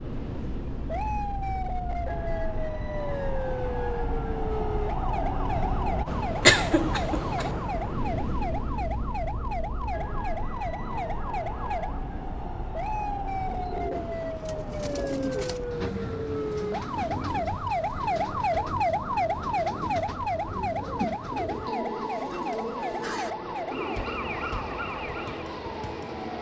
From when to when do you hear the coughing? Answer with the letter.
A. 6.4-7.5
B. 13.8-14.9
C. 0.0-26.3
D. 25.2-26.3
A.